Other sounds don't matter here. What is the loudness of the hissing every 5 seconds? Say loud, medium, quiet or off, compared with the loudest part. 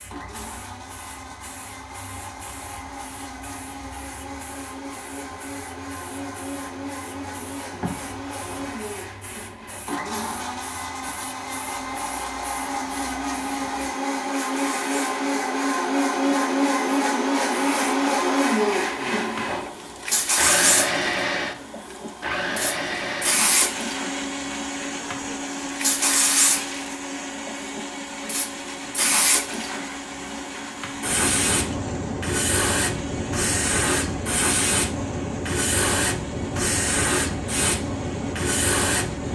quiet, quiet, quiet, quiet, loud, loud, loud, loud.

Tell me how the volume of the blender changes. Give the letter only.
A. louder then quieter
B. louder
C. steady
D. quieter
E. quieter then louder
A.